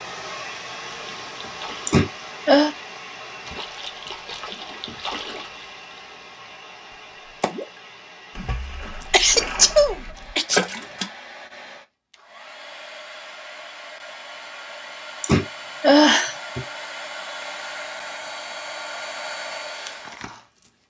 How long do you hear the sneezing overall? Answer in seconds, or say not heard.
4 s.